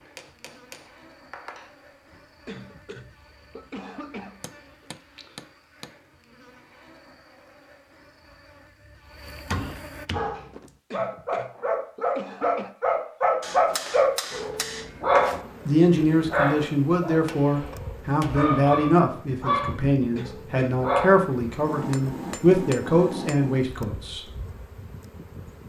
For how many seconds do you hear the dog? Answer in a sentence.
You can hear the dog for 11 seconds altogether.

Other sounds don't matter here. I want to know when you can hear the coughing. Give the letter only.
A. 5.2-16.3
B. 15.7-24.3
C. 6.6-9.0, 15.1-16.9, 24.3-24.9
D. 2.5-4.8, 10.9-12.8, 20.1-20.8
D.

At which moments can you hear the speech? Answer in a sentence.
You can hear the speech from 15.7 to 24.3 s.